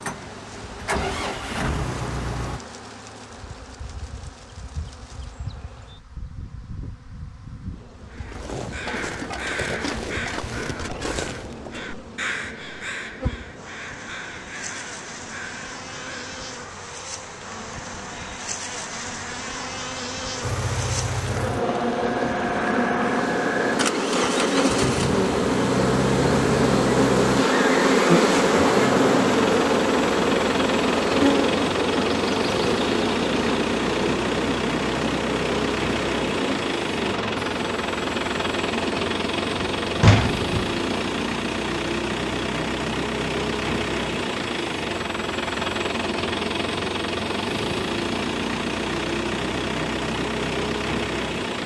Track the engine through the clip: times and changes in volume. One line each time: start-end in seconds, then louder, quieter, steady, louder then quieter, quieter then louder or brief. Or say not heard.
0.0-2.6 brief
20.4-51.6 steady.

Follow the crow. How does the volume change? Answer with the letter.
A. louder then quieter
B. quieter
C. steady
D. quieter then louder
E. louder
B.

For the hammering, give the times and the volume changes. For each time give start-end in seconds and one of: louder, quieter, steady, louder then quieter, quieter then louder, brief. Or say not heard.
not heard.